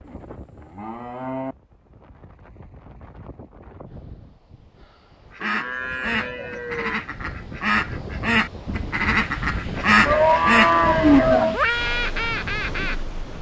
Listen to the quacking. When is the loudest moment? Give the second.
10 s.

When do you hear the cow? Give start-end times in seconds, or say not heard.
0.1-1.6, 5.4-7.0, 10.1-11.6.